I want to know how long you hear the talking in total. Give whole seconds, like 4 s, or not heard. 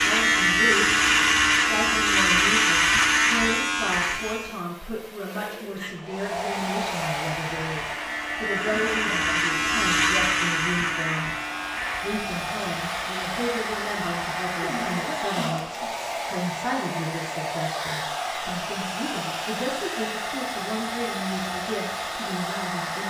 22 s.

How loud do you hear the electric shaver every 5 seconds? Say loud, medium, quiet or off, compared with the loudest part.
loud, medium, medium, off, off.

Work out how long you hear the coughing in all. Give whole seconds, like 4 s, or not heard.
2 s.